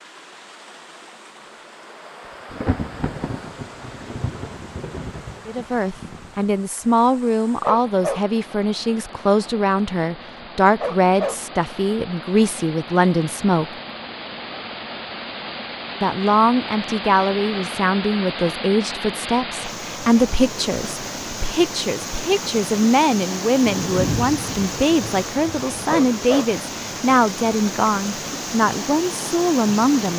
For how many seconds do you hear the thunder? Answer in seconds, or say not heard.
6 s.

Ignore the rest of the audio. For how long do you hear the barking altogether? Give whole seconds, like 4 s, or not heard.
2 s.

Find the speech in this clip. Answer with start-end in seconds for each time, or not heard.
5.5-13.7, 16.0-30.1.